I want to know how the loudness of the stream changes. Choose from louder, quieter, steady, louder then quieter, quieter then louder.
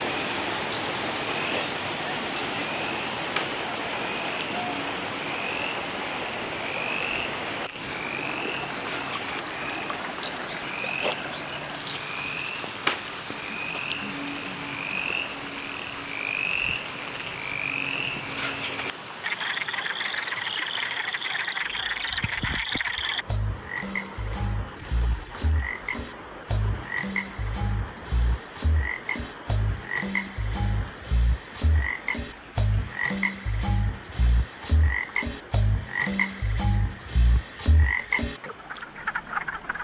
quieter.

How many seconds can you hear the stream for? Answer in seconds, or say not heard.
40 s.